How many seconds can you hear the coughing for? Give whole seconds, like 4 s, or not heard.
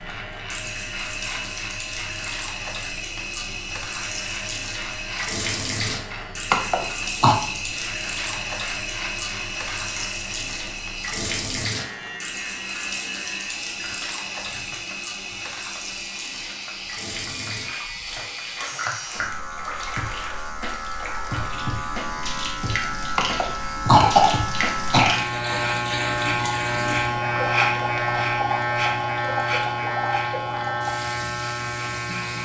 3 s.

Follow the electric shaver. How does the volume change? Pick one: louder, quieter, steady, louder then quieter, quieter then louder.
louder.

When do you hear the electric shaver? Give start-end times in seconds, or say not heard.
0.0-32.4.